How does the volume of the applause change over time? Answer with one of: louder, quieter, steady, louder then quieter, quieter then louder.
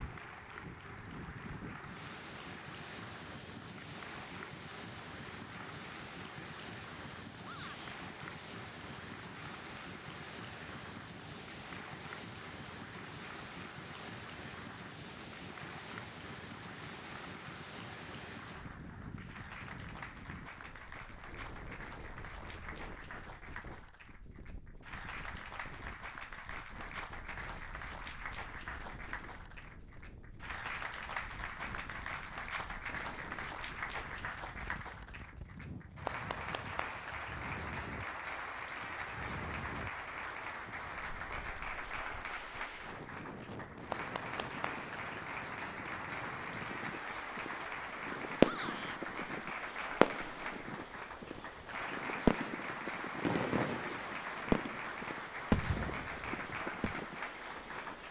louder.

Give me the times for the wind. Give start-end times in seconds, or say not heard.
0.0-58.0.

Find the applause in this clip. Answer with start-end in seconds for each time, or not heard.
0.0-58.0.